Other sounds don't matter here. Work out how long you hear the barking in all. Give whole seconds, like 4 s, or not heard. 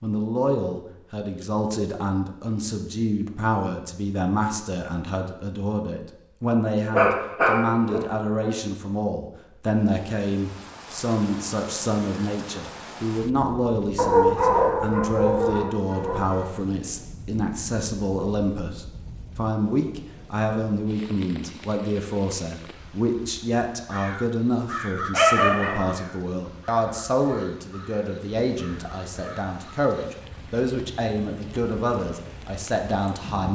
5 s.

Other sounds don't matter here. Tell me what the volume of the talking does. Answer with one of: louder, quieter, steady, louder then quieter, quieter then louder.
steady.